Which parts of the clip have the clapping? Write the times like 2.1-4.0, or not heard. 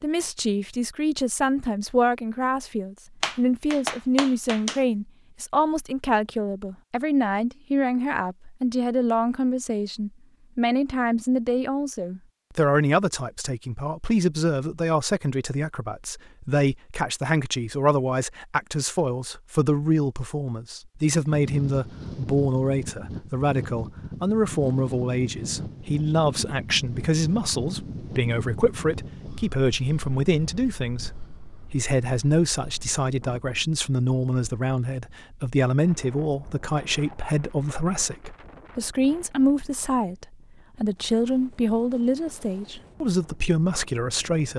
3.2-4.8.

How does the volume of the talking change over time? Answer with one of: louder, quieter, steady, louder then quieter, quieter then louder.
steady.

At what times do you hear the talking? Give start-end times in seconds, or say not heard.
0.0-44.5.